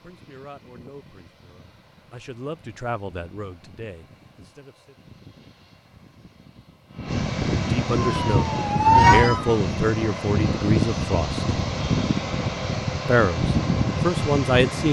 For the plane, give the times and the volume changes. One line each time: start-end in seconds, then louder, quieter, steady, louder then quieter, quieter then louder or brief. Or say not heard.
0.0-14.8 louder.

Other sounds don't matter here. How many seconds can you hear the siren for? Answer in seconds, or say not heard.
2 s.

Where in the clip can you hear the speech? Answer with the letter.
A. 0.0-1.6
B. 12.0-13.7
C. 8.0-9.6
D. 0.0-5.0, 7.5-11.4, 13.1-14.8
D.